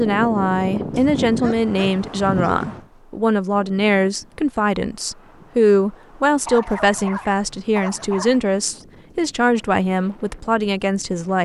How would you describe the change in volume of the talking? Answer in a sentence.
The volume of the talking stays about the same.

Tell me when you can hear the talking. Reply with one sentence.
The talking can be heard from 0.0 to 11.4 s.